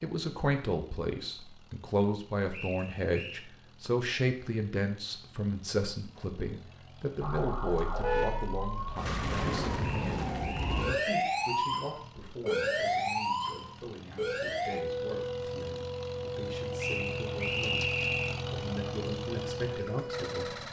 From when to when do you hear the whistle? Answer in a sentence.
You can hear the whistle from 2.5 to 3.5 s, from 9.8 to 11.2 s and from 16.8 to 18.4 s.